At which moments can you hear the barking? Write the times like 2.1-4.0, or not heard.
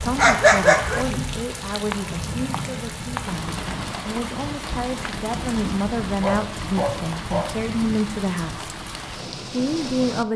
0.1-1.1, 6.1-7.5.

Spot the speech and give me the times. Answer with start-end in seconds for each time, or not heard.
0.0-8.7, 9.5-10.3.